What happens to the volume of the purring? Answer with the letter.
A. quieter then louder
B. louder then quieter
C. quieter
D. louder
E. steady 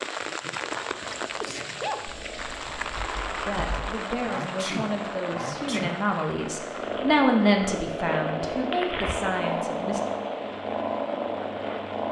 D.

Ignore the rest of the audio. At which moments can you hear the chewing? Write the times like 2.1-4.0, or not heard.
not heard.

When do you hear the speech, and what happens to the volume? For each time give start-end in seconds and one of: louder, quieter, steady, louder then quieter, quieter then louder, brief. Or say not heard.
3.5-10.0 louder then quieter.